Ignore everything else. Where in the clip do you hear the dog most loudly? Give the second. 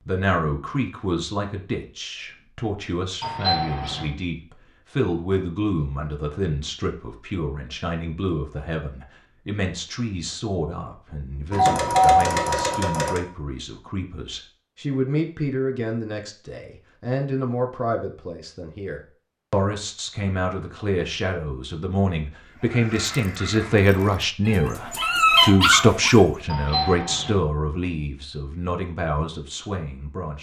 25 s.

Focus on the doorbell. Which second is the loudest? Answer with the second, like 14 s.
12 s.